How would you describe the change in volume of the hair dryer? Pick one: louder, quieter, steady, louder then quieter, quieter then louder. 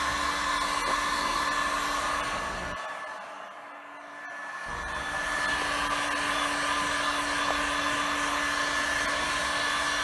quieter then louder.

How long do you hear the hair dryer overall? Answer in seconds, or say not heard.
10 s.